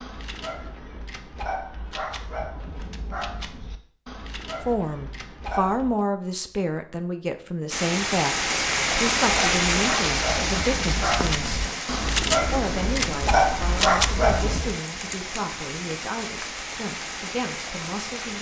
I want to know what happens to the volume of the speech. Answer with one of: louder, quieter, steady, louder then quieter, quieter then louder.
quieter.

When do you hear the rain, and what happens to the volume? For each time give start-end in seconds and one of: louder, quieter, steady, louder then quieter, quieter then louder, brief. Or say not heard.
7.7-18.3 quieter.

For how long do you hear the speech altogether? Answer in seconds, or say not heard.
14 s.